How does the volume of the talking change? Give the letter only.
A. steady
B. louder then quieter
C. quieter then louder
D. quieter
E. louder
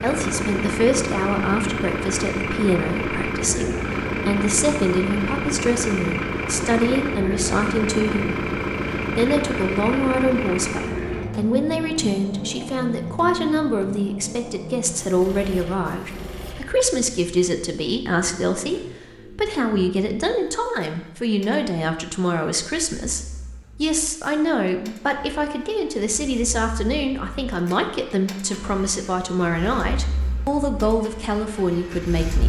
A.